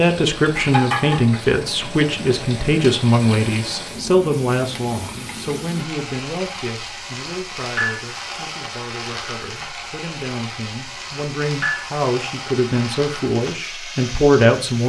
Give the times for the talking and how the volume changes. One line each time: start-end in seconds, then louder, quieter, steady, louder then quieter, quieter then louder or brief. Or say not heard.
0.0-14.8 quieter then louder.